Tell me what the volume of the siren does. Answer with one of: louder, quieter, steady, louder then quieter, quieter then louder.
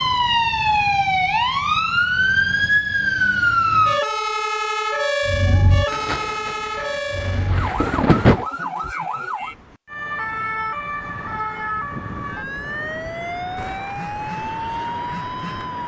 quieter.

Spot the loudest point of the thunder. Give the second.
8 s.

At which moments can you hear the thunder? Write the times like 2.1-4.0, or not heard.
5.9-8.4.